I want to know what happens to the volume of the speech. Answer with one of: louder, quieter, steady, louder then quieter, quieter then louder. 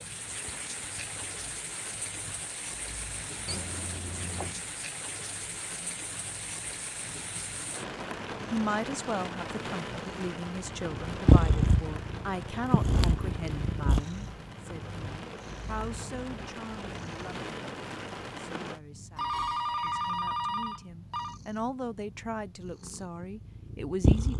quieter then louder.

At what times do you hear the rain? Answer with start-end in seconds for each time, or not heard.
0.0-18.8.